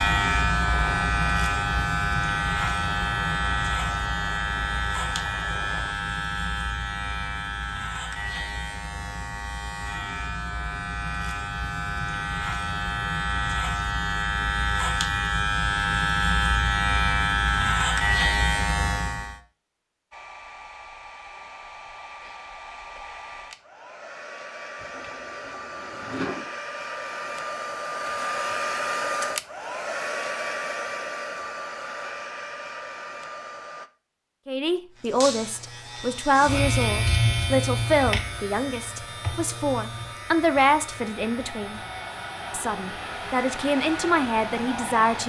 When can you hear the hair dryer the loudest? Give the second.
29 s.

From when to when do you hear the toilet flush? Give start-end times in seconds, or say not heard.
24.8-26.5.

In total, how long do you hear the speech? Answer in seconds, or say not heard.
10 s.